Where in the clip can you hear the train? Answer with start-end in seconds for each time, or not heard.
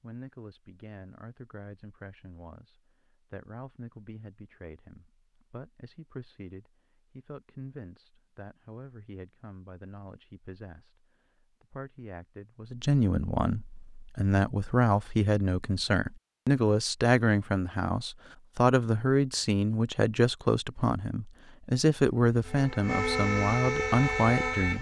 22.2-24.7.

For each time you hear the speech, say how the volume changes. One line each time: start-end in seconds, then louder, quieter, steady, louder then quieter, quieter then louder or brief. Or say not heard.
0.0-24.7 louder.